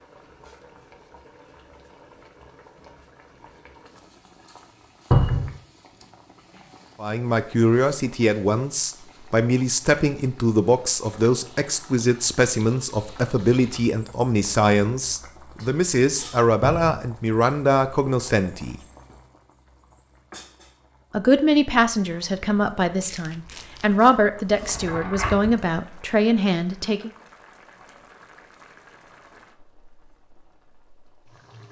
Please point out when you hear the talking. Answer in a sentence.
The talking can be heard from 7.0 to 18.8 s and from 21.1 to 27.1 s.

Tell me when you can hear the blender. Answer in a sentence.
You can't hear the blender here.